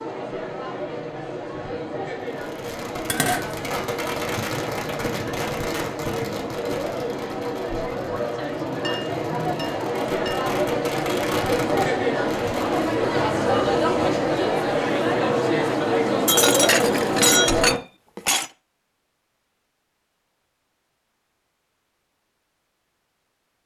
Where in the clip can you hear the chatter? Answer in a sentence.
You can hear the chatter from 0.0 to 17.8 s.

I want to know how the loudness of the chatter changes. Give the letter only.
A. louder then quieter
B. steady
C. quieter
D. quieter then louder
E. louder
E.